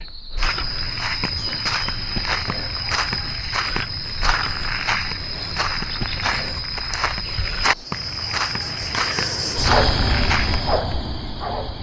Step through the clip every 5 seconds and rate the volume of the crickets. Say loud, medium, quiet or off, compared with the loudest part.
medium, loud, loud.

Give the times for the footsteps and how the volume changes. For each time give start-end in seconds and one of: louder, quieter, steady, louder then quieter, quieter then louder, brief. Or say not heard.
0.3-10.8 steady.